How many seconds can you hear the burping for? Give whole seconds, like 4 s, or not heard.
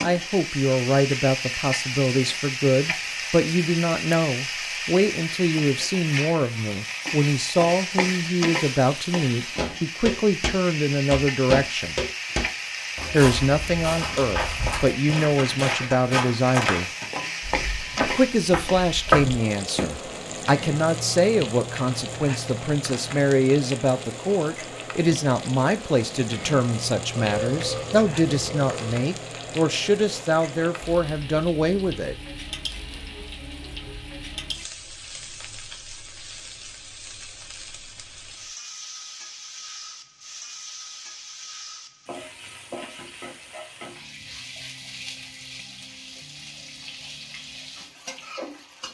2 s.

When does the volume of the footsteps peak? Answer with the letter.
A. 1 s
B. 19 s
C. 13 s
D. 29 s
B.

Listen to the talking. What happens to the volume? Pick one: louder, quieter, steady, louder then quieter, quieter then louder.
steady.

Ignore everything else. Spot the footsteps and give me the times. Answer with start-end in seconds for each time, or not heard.
9.6-19.9.